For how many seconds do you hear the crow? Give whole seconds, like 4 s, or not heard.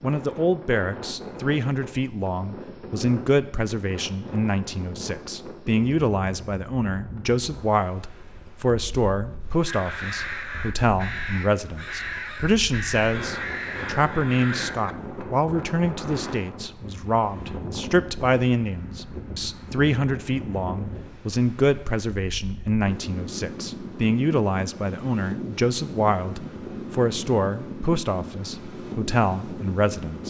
5 s.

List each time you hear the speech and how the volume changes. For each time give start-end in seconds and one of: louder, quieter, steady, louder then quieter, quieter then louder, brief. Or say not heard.
0.0-30.2 steady.